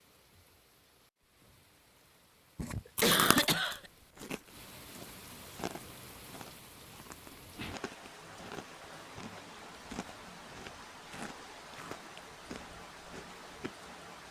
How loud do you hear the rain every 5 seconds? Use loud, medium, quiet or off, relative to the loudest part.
medium, loud, loud.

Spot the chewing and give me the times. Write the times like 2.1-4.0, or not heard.
3.0-13.8.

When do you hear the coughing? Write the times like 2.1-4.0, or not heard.
2.5-3.8.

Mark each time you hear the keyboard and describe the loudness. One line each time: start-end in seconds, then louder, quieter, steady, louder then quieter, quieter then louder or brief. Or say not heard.
not heard.